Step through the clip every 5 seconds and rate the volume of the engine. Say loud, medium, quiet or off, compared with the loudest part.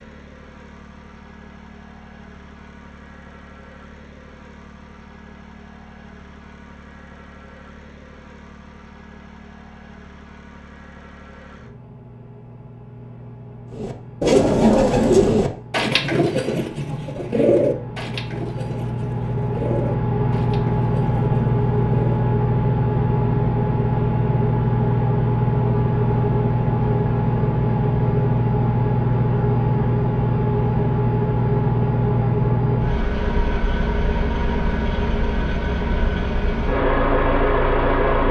quiet, quiet, quiet, medium, loud, loud, loud, loud.